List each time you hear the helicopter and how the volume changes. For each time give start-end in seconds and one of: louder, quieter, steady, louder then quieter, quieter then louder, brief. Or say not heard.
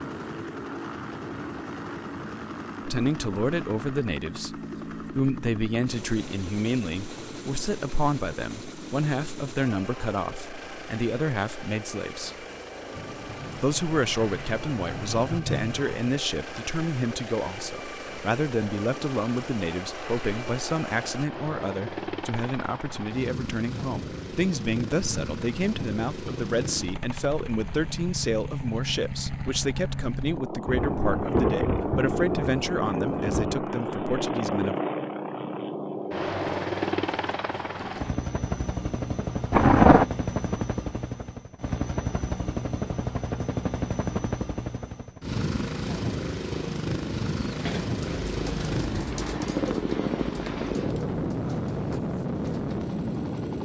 0.0-53.6 louder.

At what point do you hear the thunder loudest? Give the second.
40 s.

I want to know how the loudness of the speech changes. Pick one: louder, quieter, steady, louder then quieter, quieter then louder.
steady.